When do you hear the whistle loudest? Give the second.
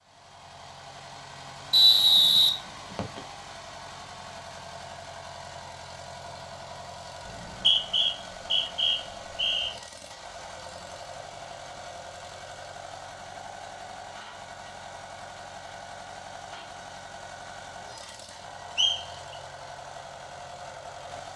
2 s.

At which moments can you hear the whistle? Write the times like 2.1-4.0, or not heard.
1.7-3.2, 7.2-9.8, 18.8-19.4.